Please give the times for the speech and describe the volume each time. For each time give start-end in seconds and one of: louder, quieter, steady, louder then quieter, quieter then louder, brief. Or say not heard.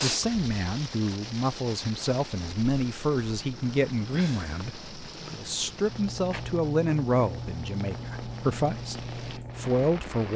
0.0-10.3 steady.